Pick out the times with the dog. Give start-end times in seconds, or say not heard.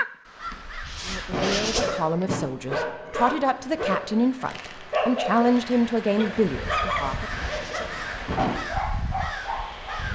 1.3-10.1.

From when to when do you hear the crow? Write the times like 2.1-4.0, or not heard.
0.0-2.2, 6.5-10.1.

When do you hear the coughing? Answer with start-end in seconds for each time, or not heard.
0.5-2.4, 6.9-8.6.